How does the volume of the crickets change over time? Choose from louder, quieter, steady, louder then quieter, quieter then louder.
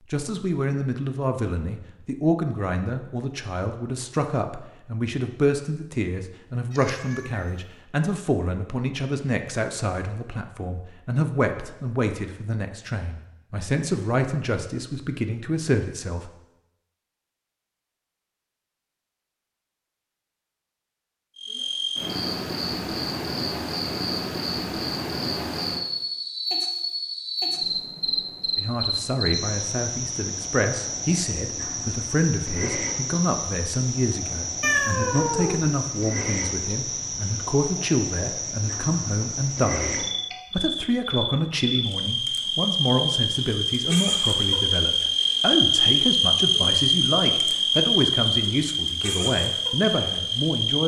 louder.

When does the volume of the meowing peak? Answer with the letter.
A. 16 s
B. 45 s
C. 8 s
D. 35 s
D.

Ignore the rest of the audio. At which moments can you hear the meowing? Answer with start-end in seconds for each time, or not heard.
6.7-7.5, 34.6-35.8.